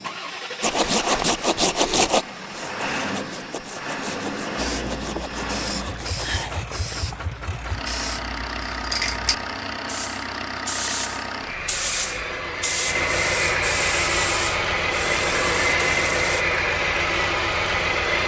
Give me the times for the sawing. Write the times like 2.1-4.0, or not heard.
0.6-6.7.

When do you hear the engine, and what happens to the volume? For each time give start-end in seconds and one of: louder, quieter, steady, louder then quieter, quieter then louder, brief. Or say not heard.
0.0-18.2 louder.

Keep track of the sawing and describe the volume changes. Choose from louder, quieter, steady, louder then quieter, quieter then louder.
quieter.